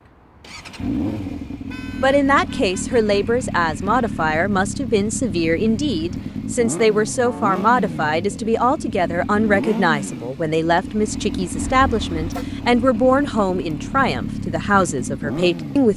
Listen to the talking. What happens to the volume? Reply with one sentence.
The loudness of the talking stays about the same.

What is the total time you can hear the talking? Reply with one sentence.
You can hear the talking for 14 seconds altogether.